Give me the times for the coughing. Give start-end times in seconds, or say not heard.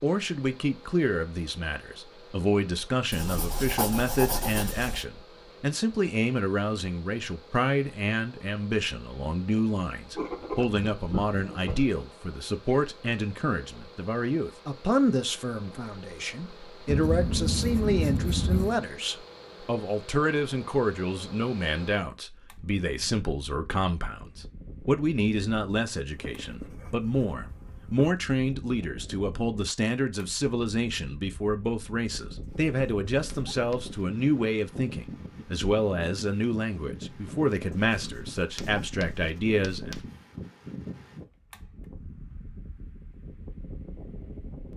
not heard.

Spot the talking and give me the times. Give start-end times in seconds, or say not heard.
0.0-40.0.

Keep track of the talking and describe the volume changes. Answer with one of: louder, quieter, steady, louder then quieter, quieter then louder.
steady.